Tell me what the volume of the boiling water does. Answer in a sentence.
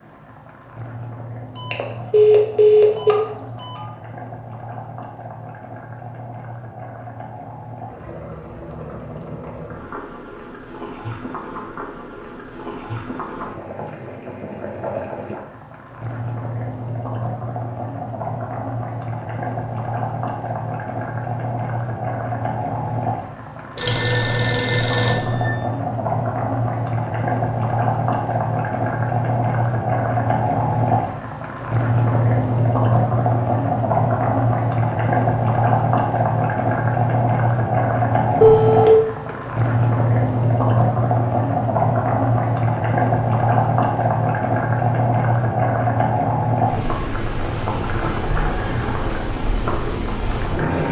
The volume of the boiling water goes up.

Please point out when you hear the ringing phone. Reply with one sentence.
You can hear the ringing phone from 1.6 to 3.9 s, from 23.8 to 25.6 s and from 38.4 to 38.9 s.